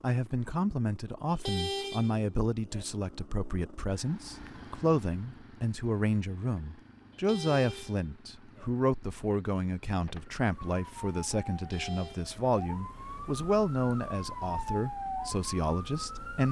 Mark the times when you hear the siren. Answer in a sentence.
The siren can be heard from 10.4 to 16.4 s.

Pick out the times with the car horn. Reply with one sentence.
The car horn can be heard from 1.3 to 2.9 s, from 7.1 to 8.7 s and from 11.6 to 12.3 s.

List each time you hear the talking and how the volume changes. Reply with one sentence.
The talking can be heard from 0.0 to 16.4 s, at a steady volume.